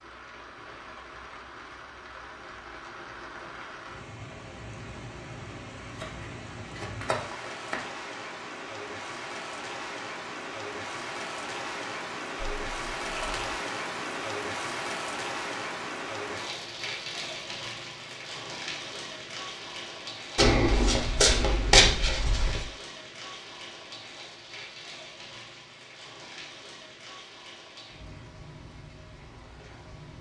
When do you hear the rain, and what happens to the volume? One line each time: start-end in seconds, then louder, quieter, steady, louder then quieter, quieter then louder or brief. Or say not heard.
0.0-30.1 louder then quieter.